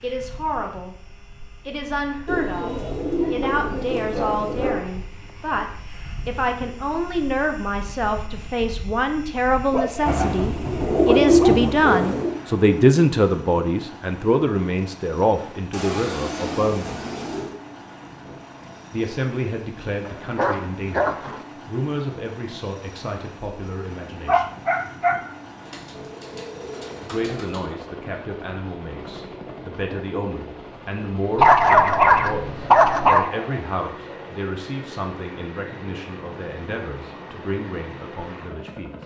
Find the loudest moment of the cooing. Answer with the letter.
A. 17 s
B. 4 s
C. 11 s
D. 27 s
C.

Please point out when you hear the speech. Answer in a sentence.
You can hear the speech from 0.0 to 0.9 s, from 1.6 to 5.7 s, from 6.2 to 17.0 s, from 18.9 to 24.5 s and from 27.0 to 39.0 s.